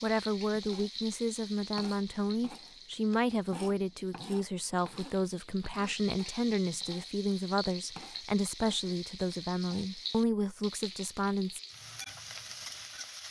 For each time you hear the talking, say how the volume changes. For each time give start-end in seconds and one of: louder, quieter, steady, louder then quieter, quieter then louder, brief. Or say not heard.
0.0-11.6 steady.